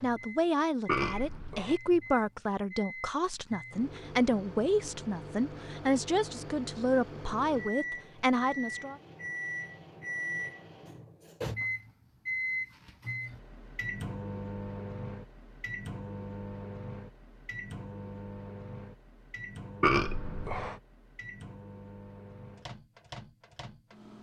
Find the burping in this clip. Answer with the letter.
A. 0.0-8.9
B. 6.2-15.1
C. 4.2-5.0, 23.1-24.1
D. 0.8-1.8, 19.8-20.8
D.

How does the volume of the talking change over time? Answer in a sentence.
The volume of the talking stays about the same.